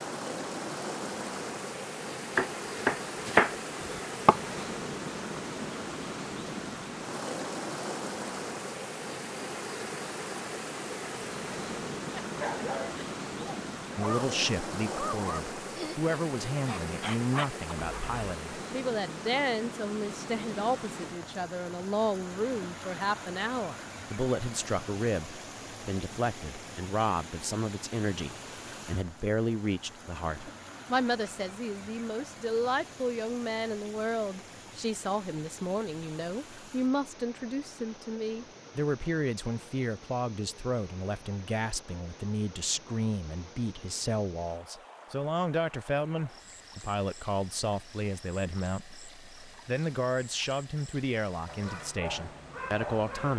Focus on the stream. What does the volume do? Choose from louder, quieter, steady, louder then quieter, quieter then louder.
quieter.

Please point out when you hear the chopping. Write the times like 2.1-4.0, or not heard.
2.4-4.4.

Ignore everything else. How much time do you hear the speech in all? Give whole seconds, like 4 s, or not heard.
39 s.